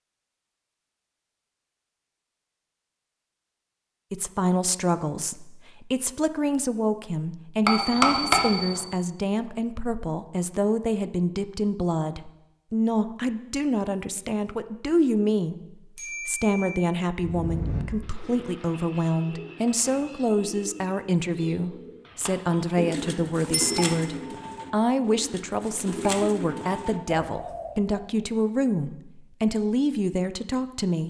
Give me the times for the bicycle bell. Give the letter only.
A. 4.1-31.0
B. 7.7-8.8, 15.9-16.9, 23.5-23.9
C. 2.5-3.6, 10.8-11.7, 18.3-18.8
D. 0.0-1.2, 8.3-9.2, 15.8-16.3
B.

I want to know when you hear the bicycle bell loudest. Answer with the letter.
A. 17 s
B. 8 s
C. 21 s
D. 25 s
B.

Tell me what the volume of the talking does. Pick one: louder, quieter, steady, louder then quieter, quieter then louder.
steady.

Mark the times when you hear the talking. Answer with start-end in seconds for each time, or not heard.
4.1-31.0.